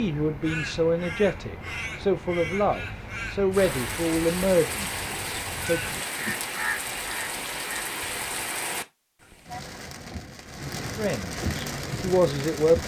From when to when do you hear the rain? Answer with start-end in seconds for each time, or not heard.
3.5-12.8.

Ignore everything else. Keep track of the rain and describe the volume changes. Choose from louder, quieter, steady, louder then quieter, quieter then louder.
quieter then louder.